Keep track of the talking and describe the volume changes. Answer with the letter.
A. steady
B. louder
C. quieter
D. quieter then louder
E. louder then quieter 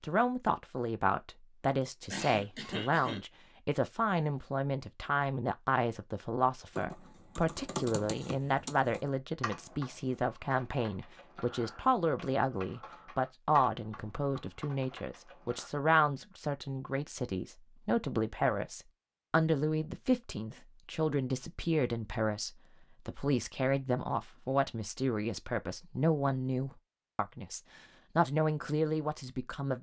A.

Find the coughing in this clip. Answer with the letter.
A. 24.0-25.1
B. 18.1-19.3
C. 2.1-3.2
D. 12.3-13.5
C.